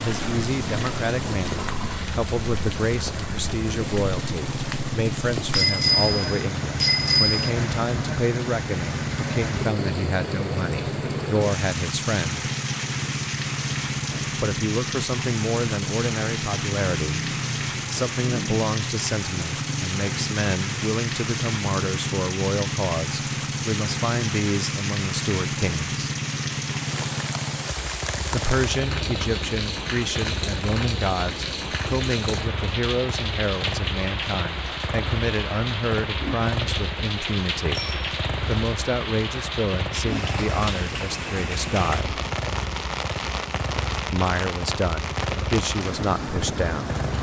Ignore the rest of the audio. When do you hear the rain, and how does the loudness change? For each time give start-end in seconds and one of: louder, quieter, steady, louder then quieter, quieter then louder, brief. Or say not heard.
0.0-47.1 steady.